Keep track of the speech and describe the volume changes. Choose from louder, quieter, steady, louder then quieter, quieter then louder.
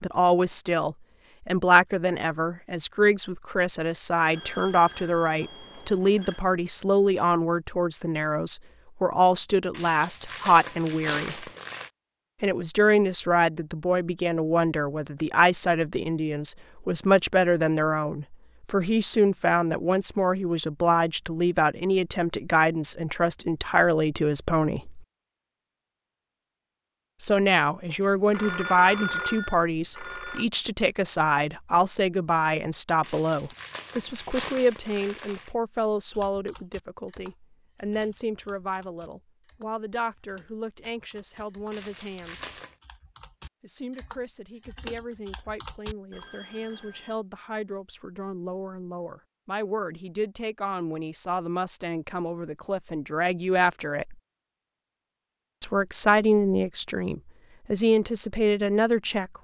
quieter then louder.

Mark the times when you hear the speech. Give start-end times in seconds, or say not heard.
0.0-11.4, 12.4-25.1, 27.2-42.6, 43.6-54.1, 55.6-59.3.